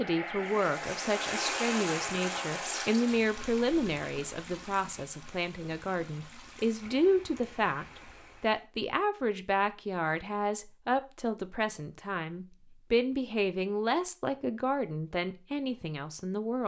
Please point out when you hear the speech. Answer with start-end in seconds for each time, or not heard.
0.0-16.6.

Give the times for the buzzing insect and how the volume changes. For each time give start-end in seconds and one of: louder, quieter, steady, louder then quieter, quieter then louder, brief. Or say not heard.
not heard.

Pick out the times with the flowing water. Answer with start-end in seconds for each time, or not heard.
0.0-8.7.